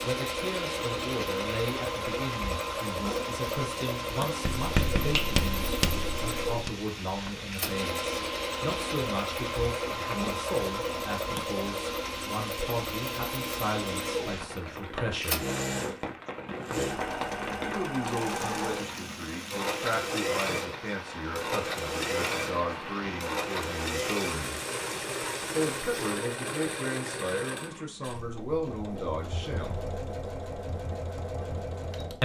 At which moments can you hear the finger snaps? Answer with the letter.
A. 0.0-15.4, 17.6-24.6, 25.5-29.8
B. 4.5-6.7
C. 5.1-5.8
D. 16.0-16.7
C.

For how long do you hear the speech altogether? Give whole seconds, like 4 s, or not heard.
27 s.